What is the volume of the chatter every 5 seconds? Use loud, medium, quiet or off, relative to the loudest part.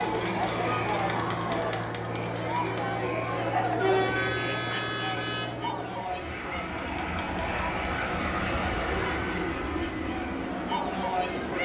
loud, medium, loud.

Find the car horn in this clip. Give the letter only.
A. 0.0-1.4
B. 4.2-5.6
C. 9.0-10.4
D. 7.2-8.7
B.